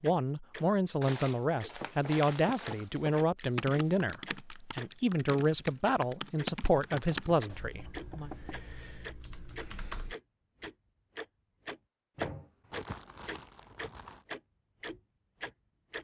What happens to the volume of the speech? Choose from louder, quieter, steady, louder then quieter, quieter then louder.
steady.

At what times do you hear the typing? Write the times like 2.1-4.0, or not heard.
3.4-10.2.